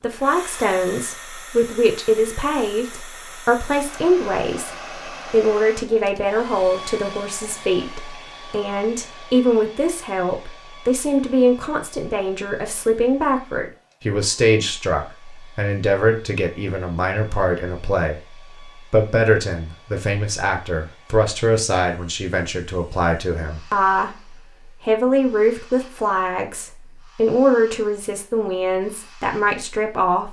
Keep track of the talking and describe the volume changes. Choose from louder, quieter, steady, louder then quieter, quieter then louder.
steady.